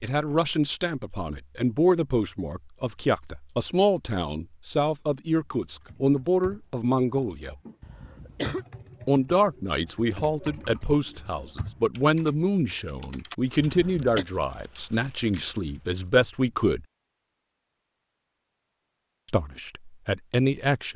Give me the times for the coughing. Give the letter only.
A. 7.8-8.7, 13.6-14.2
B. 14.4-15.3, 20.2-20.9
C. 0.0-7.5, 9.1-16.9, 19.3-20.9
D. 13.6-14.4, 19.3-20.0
A.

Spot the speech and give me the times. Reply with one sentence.
You can hear the speech from 0.0 to 7.5 s, from 9.1 to 16.9 s and from 19.3 to 20.9 s.